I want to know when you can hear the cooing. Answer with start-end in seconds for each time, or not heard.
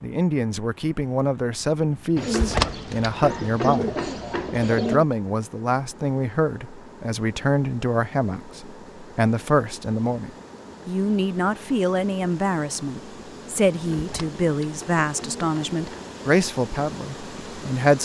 2.1-5.0, 13.7-16.1.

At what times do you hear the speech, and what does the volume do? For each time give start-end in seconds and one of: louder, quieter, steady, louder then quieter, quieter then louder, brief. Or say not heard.
0.0-18.0 steady.